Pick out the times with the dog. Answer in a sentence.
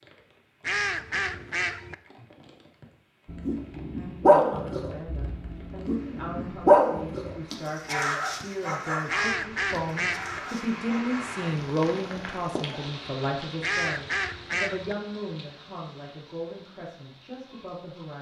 You can hear the dog from 3.2 to 11.4 s.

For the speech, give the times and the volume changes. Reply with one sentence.
The speech can be heard from 4.2 to 18.1 s, getting louder then quieter.